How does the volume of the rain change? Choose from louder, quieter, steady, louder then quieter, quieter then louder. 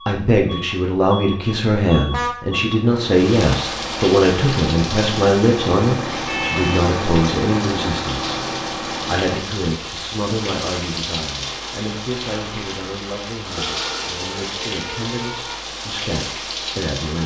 steady.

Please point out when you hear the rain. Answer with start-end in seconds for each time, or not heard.
3.0-17.2.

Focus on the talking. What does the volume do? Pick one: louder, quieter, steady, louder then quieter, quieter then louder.
quieter.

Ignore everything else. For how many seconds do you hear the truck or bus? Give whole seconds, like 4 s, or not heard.
9 s.